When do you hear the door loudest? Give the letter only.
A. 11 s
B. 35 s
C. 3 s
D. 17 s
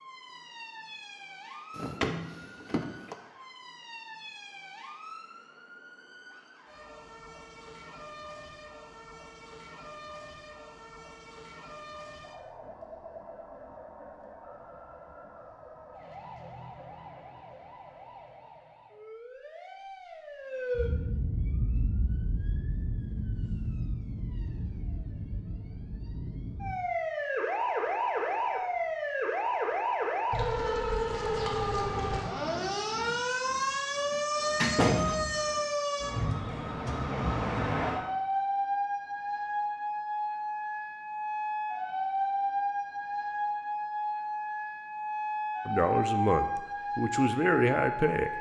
B.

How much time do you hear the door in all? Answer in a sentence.
You can hear the door for 3 seconds altogether.